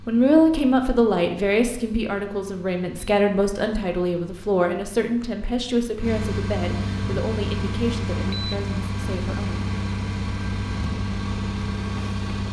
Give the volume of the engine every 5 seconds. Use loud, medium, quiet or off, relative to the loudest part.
quiet, loud, loud.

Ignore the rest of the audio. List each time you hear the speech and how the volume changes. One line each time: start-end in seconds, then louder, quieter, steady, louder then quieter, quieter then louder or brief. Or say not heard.
0.1-9.7 quieter.